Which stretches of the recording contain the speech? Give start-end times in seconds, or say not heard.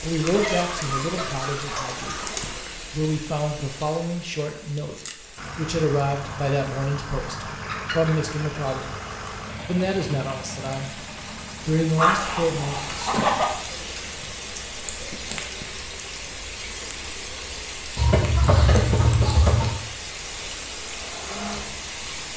0.0-8.9, 9.7-11.1, 11.7-13.1.